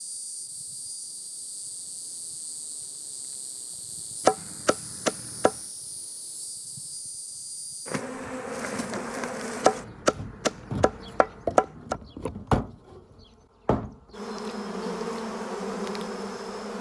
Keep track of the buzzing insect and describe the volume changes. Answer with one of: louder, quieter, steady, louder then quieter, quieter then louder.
louder.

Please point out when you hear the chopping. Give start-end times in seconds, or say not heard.
4.2-5.5, 9.6-11.9.